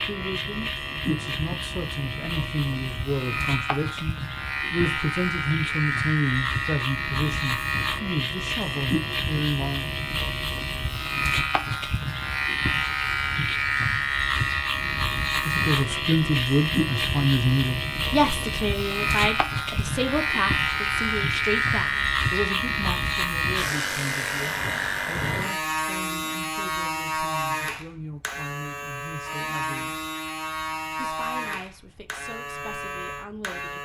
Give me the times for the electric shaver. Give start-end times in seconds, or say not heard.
0.0-33.8.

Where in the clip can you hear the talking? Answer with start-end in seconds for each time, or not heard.
0.0-9.9, 15.4-30.1, 30.9-33.8.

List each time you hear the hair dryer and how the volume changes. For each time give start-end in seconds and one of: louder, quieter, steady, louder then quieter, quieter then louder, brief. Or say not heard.
not heard.